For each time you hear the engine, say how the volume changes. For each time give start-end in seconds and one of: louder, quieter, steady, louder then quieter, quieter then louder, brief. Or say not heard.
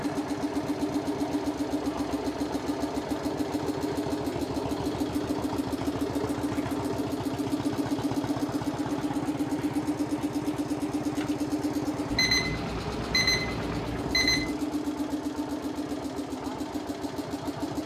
0.0-17.8 steady.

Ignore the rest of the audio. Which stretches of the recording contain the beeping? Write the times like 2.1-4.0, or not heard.
12.1-14.6.